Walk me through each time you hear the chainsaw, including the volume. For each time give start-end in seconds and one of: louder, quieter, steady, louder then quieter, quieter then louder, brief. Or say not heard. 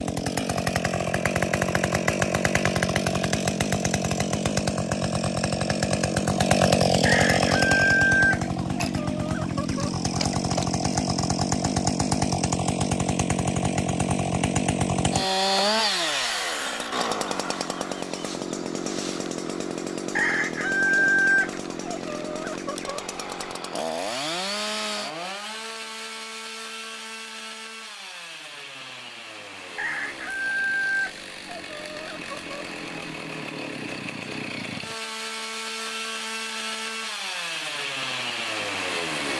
0.0-39.3 quieter.